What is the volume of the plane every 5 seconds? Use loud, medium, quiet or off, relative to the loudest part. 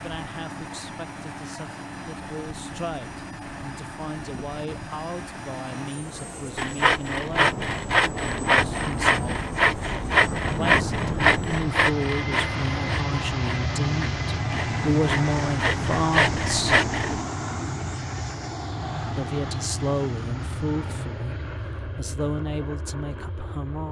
medium, medium, loud, loud, medium.